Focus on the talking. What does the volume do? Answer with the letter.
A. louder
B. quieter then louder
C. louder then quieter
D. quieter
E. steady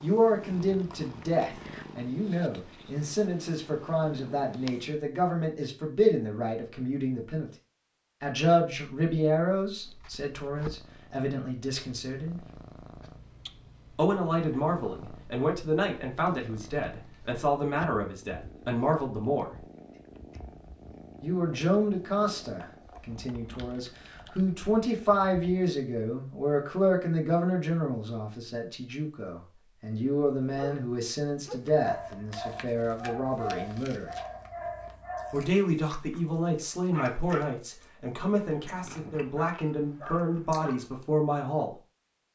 E.